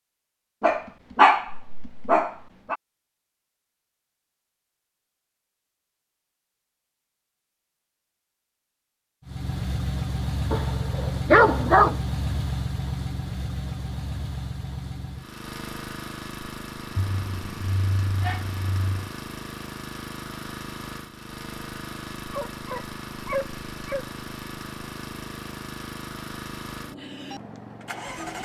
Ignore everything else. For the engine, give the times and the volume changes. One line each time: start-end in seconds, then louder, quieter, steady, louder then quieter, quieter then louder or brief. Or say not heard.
9.2-28.4 quieter.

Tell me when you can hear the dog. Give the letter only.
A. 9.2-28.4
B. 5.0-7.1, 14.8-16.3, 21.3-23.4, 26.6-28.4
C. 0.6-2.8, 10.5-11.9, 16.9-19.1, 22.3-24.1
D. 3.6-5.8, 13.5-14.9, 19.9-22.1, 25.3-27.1
C.